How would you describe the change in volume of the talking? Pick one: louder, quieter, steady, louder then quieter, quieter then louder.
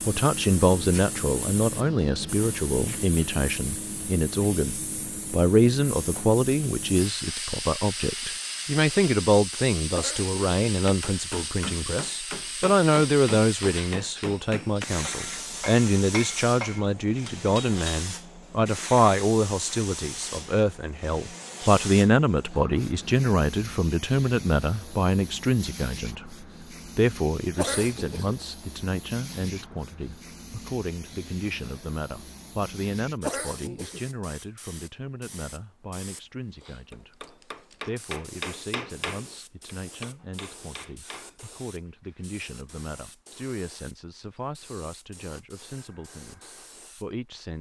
quieter.